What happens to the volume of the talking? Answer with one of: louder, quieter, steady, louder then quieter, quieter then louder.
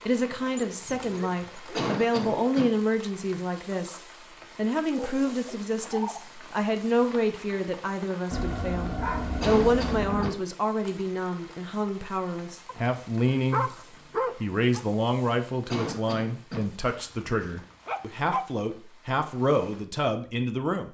steady.